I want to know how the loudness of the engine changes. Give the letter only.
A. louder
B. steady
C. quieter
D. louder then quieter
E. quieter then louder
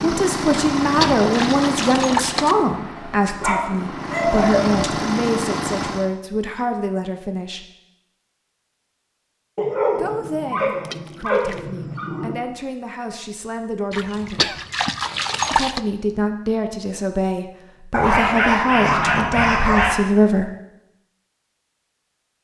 E.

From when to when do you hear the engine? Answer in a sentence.
You can hear the engine from 0.0 to 6.1 s.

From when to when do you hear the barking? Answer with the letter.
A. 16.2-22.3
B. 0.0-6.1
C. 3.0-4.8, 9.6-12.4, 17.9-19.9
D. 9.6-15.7
C.